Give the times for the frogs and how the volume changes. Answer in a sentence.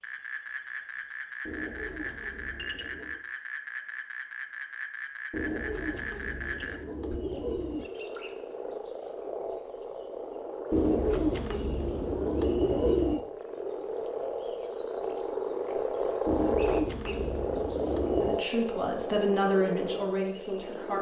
You can hear the frogs from 0.0 to 20.9 s, getting louder.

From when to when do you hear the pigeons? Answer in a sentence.
You can hear the pigeons from 1.4 to 3.2 s, from 5.3 to 7.8 s, from 10.7 to 13.2 s and from 16.2 to 18.4 s.